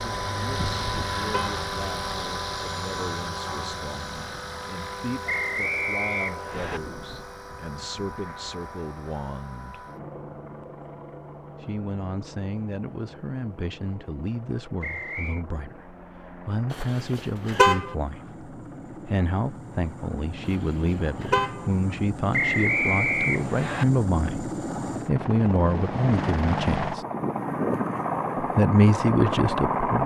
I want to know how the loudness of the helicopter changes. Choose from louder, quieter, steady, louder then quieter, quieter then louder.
quieter then louder.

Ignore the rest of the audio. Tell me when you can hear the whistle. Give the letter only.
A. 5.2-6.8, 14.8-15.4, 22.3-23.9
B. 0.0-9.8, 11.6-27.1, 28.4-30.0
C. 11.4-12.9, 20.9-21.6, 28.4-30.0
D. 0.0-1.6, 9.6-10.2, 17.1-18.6
A.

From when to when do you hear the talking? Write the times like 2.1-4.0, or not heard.
0.0-9.8, 11.6-27.1, 28.4-30.0.